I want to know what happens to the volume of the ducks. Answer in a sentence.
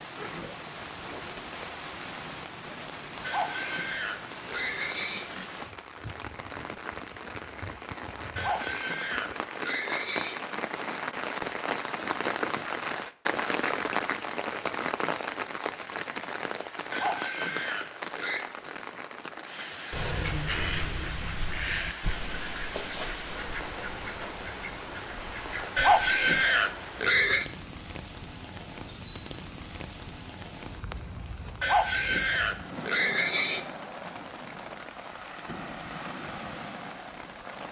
The volume of the ducks goes down.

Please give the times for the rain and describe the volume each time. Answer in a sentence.
You can hear the rain from 0.0 to 37.6 s, getting louder then quieter.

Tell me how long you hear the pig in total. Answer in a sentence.
You can hear the pig for 9 seconds altogether.